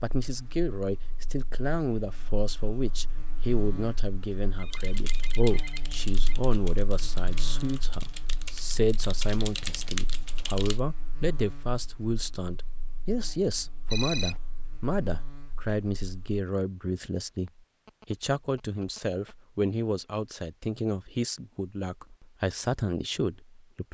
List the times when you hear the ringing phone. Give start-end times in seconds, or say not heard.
4.5-6.3, 13.8-14.4, 17.4-19.4.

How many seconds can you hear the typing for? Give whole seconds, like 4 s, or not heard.
6 s.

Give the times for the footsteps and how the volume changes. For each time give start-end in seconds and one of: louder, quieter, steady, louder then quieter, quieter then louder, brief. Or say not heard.
not heard.